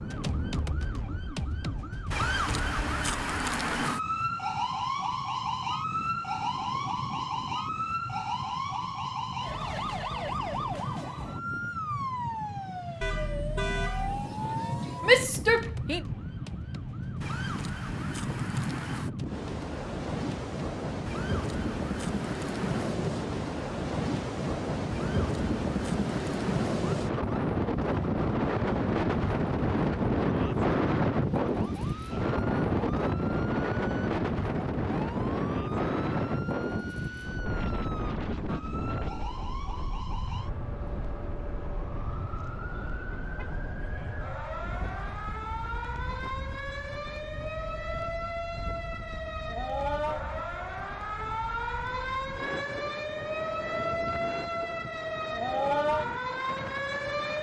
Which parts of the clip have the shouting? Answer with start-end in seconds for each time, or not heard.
15.0-16.1.